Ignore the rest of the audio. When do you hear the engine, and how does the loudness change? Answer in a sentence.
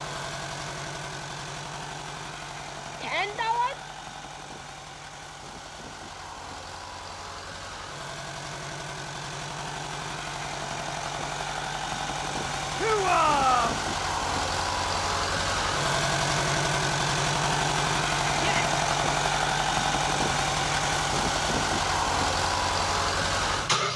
You can hear the engine from 0.0 to 23.9 s, getting louder.